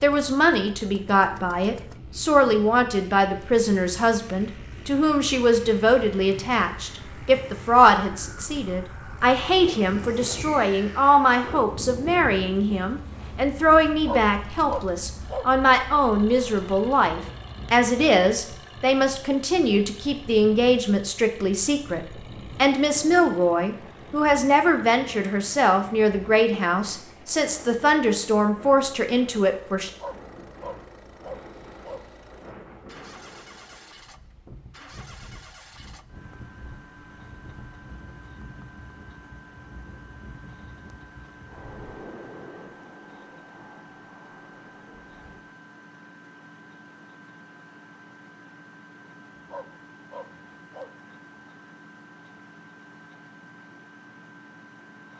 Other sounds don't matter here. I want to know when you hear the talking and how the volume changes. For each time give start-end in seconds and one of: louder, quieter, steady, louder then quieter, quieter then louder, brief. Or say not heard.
0.0-29.9 steady.